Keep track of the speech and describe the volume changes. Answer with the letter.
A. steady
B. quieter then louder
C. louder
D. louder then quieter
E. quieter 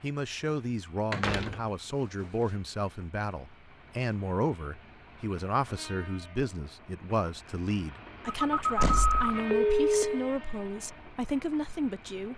A.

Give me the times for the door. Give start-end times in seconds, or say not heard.
1.1-2.3, 8.8-9.2.